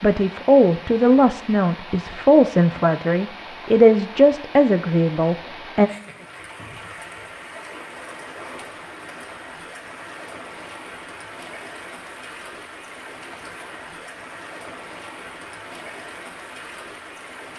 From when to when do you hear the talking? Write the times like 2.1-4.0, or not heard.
0.0-5.9.